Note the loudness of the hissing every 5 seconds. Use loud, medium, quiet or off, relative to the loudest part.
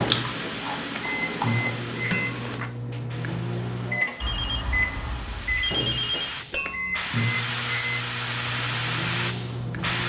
medium, loud.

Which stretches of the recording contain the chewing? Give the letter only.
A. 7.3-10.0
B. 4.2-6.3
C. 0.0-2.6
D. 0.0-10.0
C.